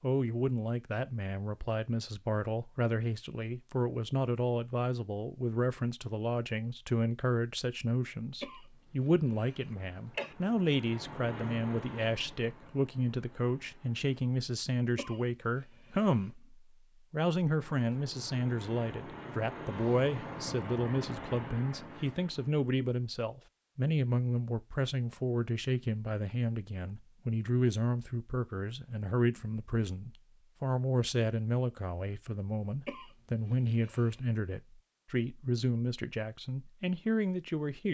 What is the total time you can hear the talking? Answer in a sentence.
You can hear the talking for 38 seconds altogether.